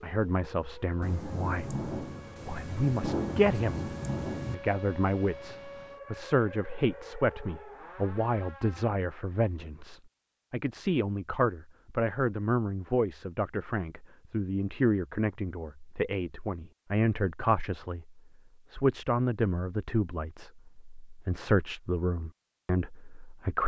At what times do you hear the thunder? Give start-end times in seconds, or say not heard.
1.0-4.5.